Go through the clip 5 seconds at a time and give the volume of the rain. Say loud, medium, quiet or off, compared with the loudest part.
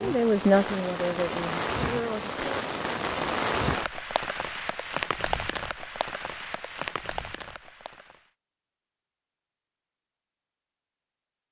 loud, loud, off.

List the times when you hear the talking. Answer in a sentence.
You can hear the talking from 0.0 to 2.6 s.